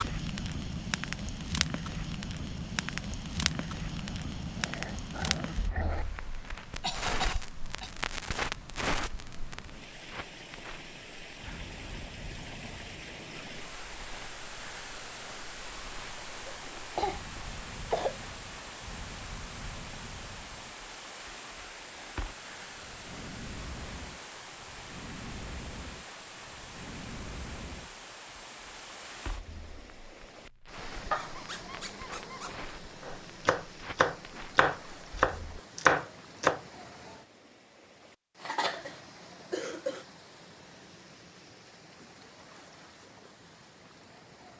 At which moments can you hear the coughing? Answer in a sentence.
You can hear the coughing from 6.8 to 7.9 s, from 16.4 to 18.2 s and from 38.4 to 40.0 s.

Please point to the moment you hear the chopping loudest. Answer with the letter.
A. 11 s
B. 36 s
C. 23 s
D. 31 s
B.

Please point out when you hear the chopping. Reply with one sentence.
You can hear the chopping from 33.0 to 36.6 s.